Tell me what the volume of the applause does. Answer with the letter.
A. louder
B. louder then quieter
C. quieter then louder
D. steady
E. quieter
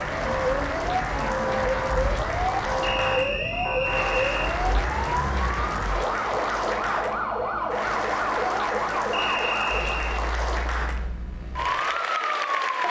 D.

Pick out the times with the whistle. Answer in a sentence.
You can hear the whistle from 2.8 to 4.5 s and from 9.1 to 10.2 s.